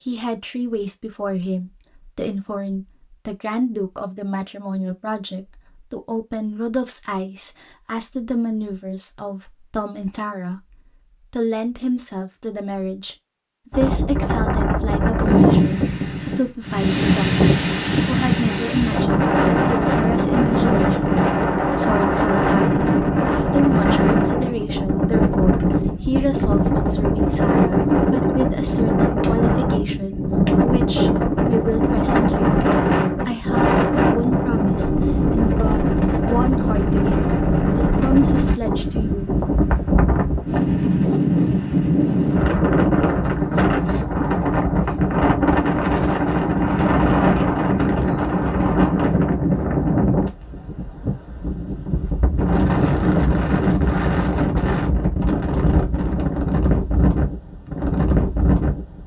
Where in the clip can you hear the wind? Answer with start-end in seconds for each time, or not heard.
13.7-59.0.